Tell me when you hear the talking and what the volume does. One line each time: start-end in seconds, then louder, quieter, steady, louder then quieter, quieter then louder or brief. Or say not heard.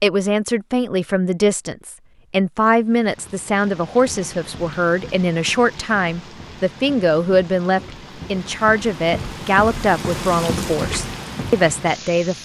0.0-12.4 steady.